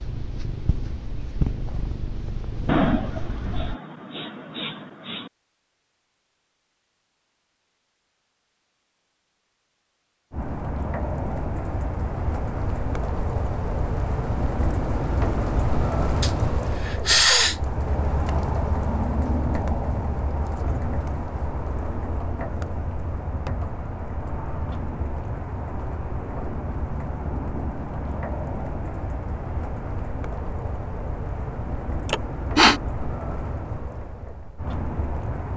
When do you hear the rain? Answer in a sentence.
The rain can be heard from 10.3 to 35.5 s.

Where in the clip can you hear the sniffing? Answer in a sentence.
You can hear the sniffing from 2.6 to 5.3 s, from 16.2 to 17.6 s and from 32.0 to 32.8 s.